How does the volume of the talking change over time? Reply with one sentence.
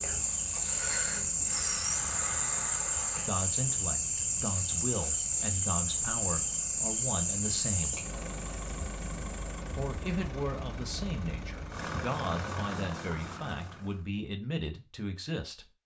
The loudness of the talking stays about the same.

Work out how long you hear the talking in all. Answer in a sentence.
You can hear the talking for 11 seconds altogether.